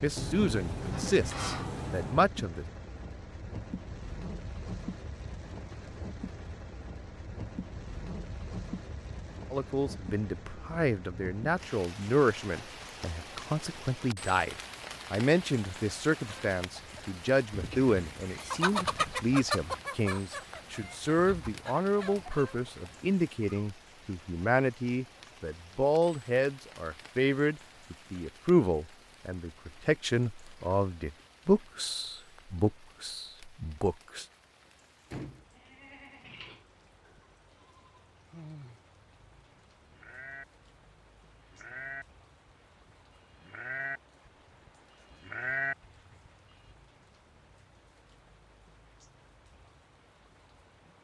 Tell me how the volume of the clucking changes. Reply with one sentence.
The volume of the clucking goes up, then down.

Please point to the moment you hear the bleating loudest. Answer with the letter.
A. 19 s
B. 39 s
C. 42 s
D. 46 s
D.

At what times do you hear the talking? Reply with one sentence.
The talking can be heard from 0.0 to 2.6 s and from 9.5 to 34.2 s.